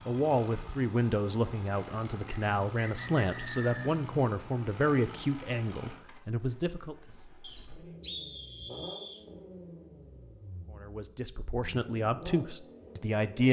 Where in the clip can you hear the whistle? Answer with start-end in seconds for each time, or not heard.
2.2-4.0, 7.4-9.2.